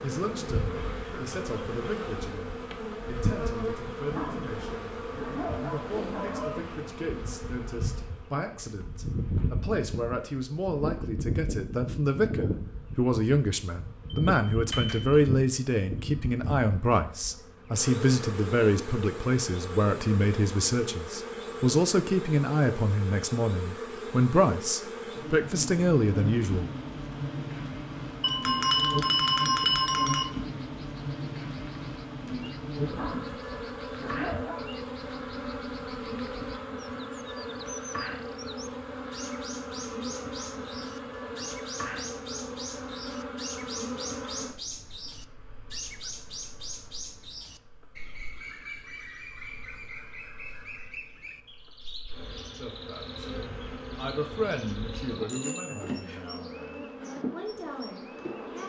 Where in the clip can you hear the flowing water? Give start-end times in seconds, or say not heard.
not heard.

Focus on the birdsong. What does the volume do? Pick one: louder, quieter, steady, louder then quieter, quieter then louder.
louder then quieter.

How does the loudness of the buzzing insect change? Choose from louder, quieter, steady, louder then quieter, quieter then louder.
quieter.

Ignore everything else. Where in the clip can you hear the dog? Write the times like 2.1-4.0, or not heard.
4.0-6.8, 32.9-34.7.